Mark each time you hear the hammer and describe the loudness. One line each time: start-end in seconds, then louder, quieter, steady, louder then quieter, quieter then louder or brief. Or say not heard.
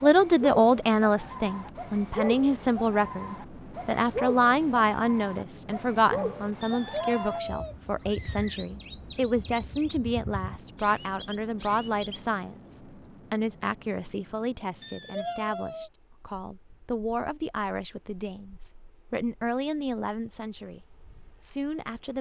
not heard.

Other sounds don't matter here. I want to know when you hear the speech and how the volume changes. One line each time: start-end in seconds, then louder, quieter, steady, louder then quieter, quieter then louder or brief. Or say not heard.
0.0-22.1 quieter.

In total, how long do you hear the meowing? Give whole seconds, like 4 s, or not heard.
3 s.